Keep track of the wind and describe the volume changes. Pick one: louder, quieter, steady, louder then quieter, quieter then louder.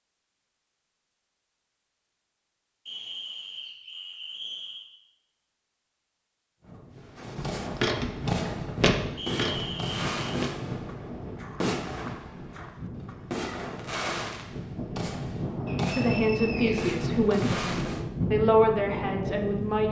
quieter then louder.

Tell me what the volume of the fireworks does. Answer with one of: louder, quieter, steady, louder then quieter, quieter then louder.
steady.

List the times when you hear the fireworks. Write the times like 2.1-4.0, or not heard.
7.0-18.1.